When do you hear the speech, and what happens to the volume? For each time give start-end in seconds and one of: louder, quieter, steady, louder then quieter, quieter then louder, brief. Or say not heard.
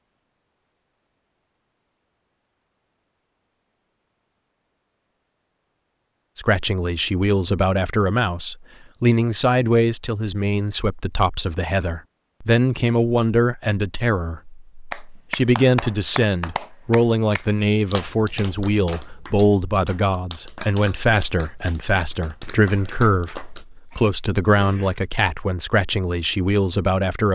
6.3-27.3 steady.